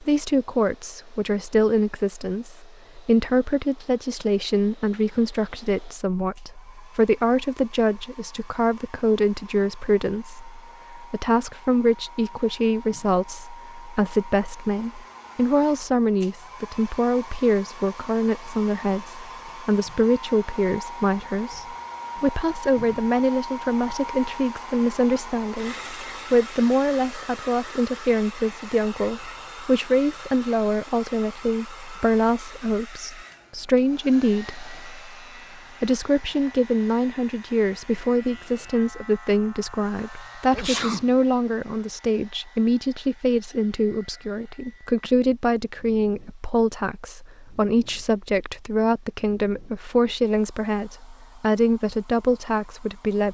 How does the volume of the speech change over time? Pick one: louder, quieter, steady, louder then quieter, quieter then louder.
steady.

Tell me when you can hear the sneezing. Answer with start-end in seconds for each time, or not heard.
40.5-41.1.